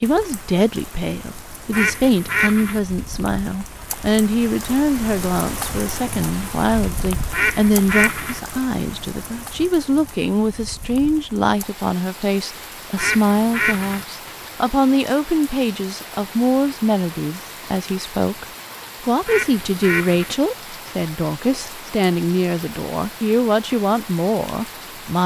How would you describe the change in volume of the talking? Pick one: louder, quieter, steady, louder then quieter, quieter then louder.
steady.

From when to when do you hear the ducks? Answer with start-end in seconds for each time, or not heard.
1.7-2.8, 7.3-8.4, 12.9-14.1, 19.2-20.4.